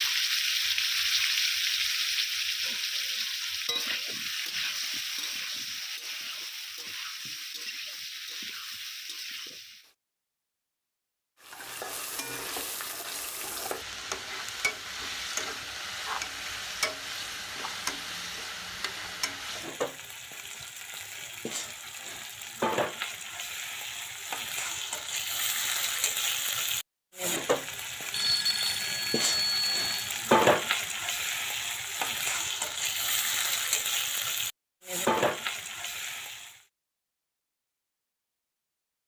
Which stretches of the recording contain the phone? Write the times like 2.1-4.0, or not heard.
28.1-30.1.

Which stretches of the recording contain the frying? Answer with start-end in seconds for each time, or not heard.
0.0-9.9, 11.4-36.6.